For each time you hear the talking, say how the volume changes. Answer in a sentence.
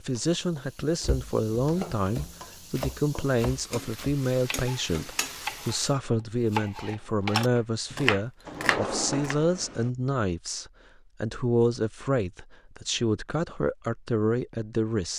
The talking can be heard from 0.0 to 15.1 s, at a steady volume.